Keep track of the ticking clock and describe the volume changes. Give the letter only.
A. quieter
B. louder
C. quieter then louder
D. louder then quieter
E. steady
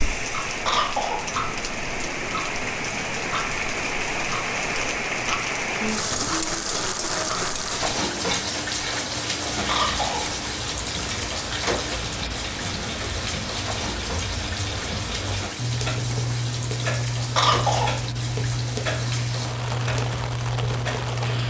B.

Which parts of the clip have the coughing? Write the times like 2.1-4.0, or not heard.
0.7-1.3, 9.7-10.3, 17.4-18.0.